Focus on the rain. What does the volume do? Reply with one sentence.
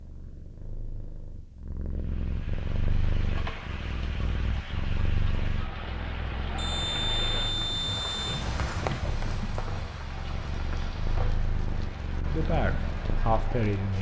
The volume of the rain goes up, then down.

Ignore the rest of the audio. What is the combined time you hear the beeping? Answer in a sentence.
The beeping can be heard for 2 seconds in total.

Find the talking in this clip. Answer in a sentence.
The talking can be heard from 12.2 to 13.9 s.